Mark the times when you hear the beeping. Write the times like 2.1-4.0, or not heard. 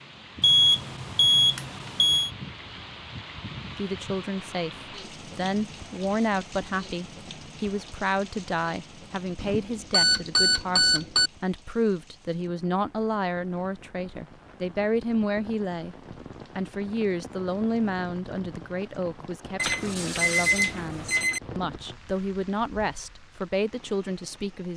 0.4-2.3, 9.4-11.3, 19.6-21.4.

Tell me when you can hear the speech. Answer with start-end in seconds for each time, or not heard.
3.8-15.9, 16.6-24.7.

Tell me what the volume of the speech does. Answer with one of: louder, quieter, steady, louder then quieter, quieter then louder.
steady.